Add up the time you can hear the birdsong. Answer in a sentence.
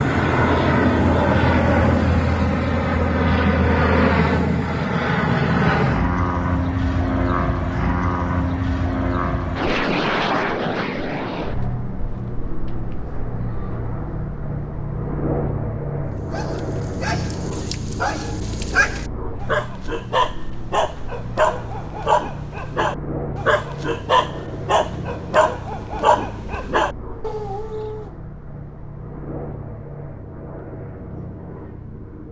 The birdsong can't be heard in this clip.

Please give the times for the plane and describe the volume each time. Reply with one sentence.
You can hear the plane from 0.0 to 32.2 s, getting quieter.